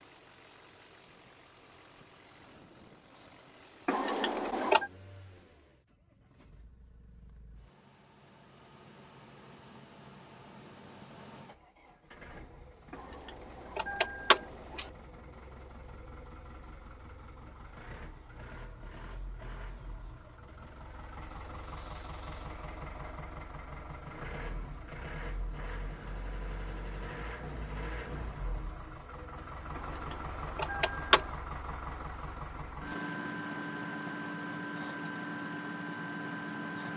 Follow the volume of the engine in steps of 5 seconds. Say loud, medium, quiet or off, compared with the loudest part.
quiet, quiet, quiet, quiet, medium, medium, loud, loud.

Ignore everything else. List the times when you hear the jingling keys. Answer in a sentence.
You can hear the jingling keys from 3.9 to 4.8 s, from 12.9 to 14.9 s and from 29.8 to 31.4 s.